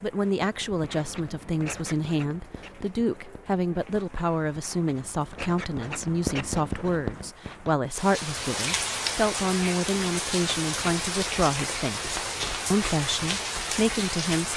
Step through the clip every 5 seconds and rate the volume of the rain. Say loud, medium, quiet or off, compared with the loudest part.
quiet, loud, loud.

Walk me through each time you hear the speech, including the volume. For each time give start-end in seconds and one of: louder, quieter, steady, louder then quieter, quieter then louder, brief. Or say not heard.
0.0-14.5 steady.